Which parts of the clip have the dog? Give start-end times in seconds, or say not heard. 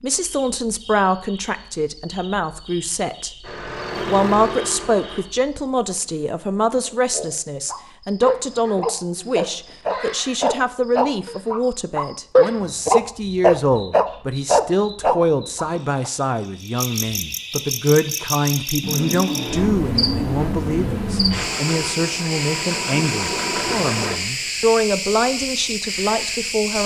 7.7-16.1.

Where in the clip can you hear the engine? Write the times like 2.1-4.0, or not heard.
3.4-5.2, 18.8-24.2.